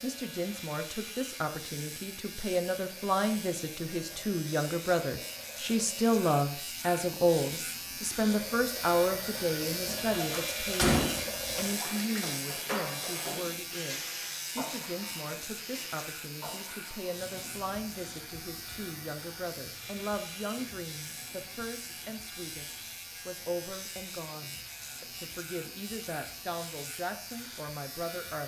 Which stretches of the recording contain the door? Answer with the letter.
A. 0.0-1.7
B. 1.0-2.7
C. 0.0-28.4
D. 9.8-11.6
D.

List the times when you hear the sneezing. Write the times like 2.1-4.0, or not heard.
not heard.